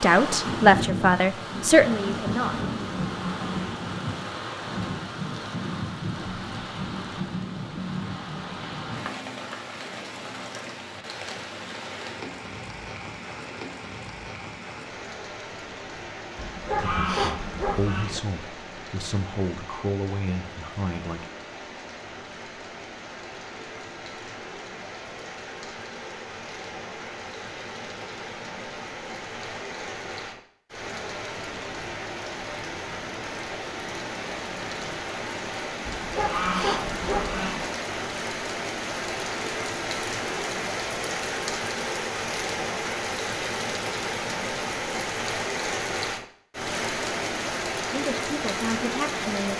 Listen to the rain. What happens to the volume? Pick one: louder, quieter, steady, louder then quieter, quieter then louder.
quieter then louder.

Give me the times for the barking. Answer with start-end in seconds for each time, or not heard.
16.4-18.2, 35.9-37.7.